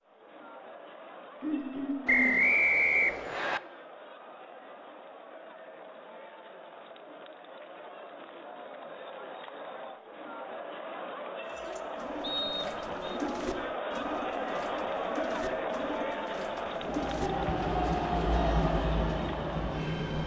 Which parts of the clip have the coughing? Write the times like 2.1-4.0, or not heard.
1.4-2.4.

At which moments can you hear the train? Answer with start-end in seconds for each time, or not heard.
16.6-20.2.